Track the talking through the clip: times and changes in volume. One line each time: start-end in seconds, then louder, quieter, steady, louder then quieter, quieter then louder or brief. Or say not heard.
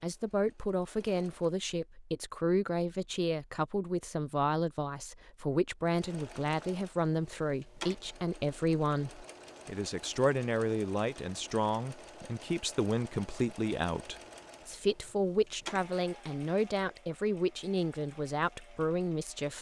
0.0-19.5 steady.